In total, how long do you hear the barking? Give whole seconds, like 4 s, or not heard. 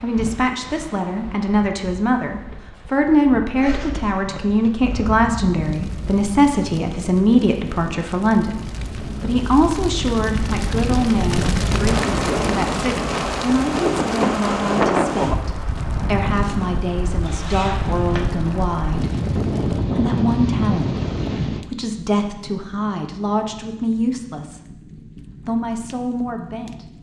not heard.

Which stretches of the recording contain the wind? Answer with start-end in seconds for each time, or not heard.
0.0-21.6.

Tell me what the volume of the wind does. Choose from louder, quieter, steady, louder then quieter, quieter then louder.
louder.